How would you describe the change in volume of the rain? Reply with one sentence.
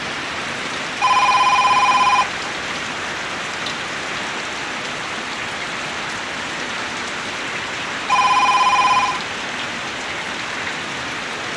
The loudness of the rain stays about the same.